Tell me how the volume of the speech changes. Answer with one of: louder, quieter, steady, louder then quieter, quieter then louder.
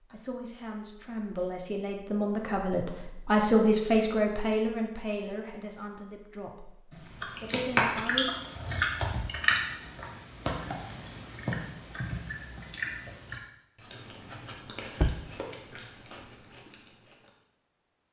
louder then quieter.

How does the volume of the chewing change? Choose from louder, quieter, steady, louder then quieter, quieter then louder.
quieter.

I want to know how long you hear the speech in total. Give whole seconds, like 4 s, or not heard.
8 s.